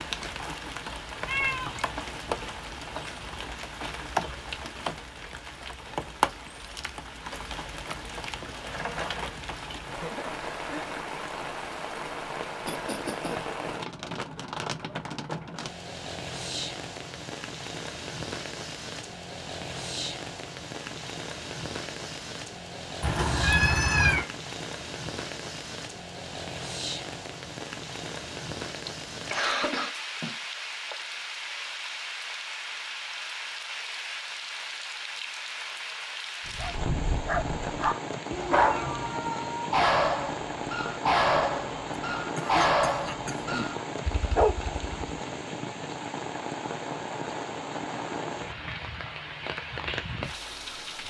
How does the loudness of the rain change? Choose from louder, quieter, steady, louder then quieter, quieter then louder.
steady.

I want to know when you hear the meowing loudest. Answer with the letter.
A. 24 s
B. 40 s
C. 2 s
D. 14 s
A.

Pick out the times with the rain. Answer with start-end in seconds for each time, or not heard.
0.0-51.0.